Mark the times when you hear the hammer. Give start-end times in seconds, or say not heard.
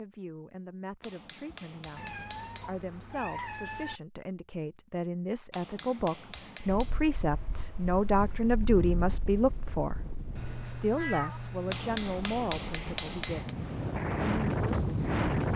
1.0-2.9, 5.5-7.0, 11.7-13.6.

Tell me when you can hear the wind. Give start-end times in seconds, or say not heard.
6.7-15.5.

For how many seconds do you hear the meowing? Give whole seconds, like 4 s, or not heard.
4 s.